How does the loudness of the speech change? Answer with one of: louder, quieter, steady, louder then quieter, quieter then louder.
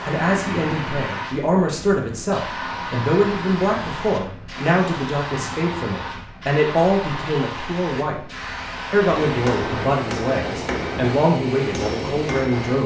steady.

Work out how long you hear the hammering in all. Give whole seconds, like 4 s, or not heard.
4 s.